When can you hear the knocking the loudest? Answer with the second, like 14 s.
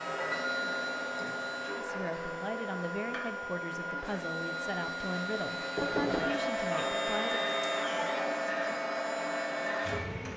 6 s.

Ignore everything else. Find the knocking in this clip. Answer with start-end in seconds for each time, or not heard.
2.9-3.4, 5.8-6.3.